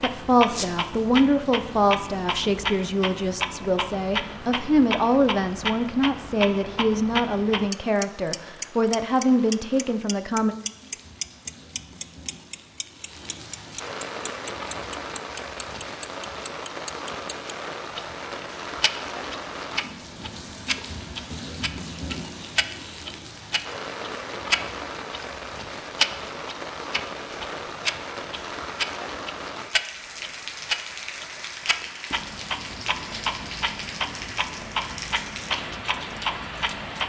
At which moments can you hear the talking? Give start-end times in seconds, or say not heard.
0.0-10.6.